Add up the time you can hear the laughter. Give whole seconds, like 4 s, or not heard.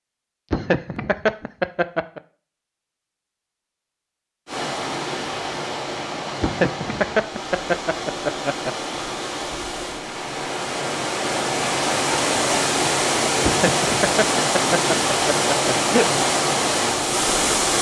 7 s.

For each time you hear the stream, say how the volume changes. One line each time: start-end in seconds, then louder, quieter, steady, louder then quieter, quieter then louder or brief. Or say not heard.
4.5-17.7 louder.